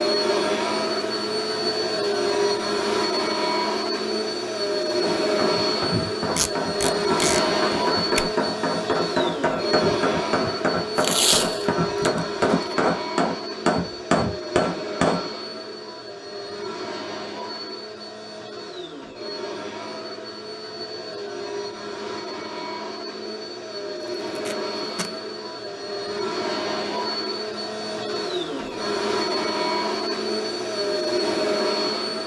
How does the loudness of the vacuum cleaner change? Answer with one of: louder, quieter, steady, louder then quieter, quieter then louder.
quieter then louder.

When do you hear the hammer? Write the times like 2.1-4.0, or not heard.
5.0-15.2.